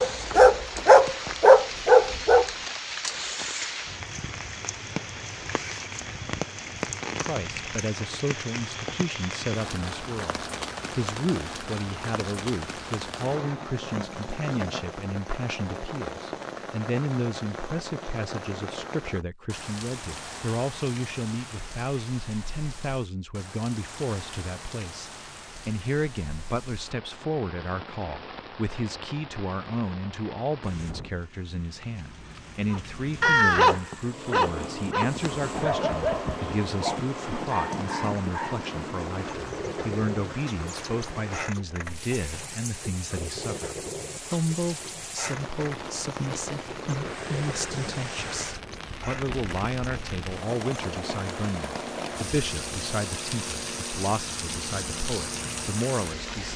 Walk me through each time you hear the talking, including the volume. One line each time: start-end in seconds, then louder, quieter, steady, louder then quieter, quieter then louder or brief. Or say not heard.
7.2-56.5 steady.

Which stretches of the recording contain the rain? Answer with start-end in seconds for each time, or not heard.
0.0-56.5.